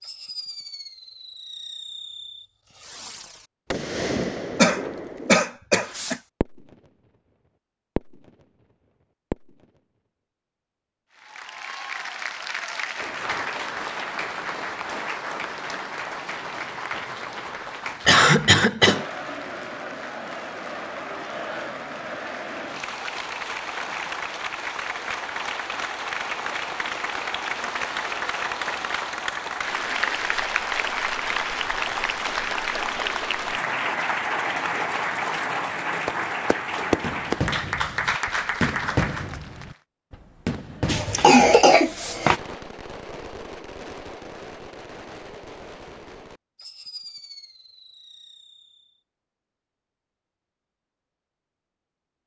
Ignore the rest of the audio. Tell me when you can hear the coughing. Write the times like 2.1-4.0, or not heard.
4.5-6.2, 18.1-19.1, 40.9-42.4.